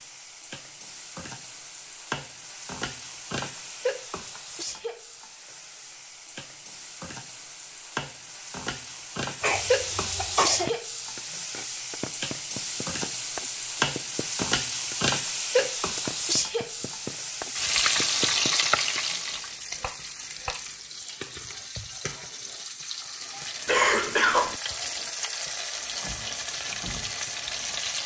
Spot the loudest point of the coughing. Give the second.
24 s.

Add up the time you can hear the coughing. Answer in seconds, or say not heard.
2 s.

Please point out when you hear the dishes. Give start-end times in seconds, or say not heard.
not heard.